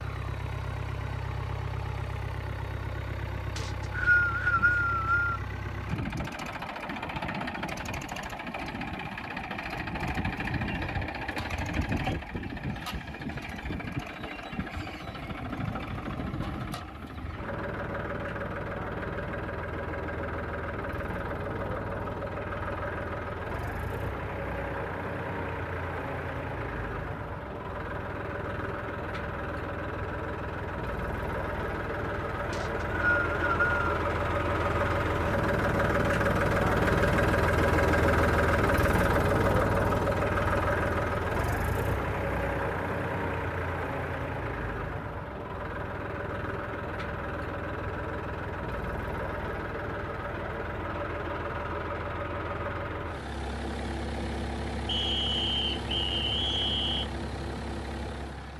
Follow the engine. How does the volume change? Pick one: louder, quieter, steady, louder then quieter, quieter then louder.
louder then quieter.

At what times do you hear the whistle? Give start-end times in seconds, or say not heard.
3.5-5.4, 32.5-33.8, 54.9-57.1.